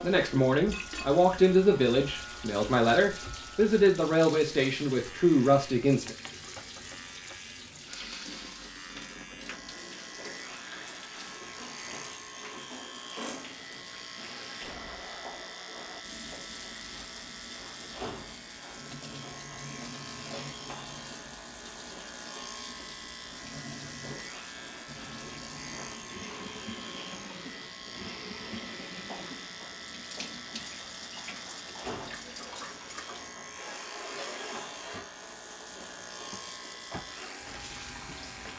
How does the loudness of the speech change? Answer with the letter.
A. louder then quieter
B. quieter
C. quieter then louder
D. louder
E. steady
E.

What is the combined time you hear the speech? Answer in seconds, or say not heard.
6 s.